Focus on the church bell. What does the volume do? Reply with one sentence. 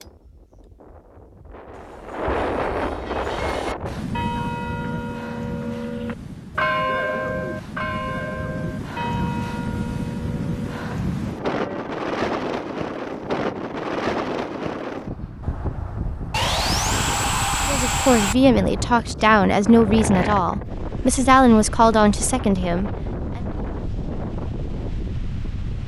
The loudness of the church bell goes up, then down.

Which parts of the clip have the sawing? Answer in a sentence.
The sawing can be heard from 1.8 to 3.8 s and from 16.3 to 18.4 s.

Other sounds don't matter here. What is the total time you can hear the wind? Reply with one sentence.
The wind can be heard for 26 seconds in total.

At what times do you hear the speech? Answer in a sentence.
The speech can be heard from 17.6 to 23.4 s.